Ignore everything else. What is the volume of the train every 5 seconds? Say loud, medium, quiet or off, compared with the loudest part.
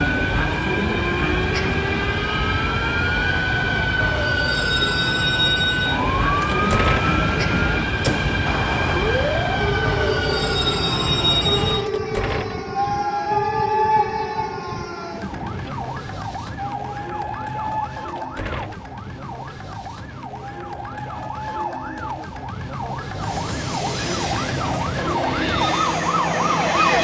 loud, loud, loud, medium, medium, loud.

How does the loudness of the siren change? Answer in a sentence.
The volume of the siren goes down, then up.